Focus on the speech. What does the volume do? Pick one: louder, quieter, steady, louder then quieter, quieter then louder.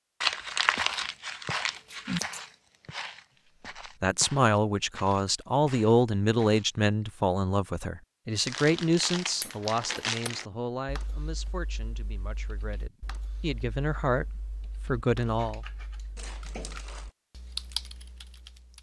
quieter then louder.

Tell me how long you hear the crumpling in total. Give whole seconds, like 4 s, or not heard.
5 s.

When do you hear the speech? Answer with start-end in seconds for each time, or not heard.
4.0-15.6.